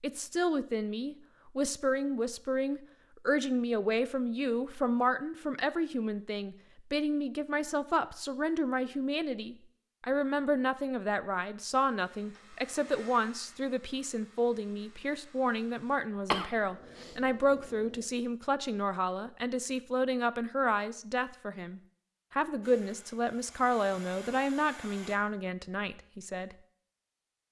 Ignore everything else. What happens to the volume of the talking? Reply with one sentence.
The volume of the talking stays about the same.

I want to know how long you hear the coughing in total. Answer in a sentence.
You can hear the coughing for 2 seconds altogether.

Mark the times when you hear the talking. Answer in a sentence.
The talking can be heard from 0.0 to 26.6 s.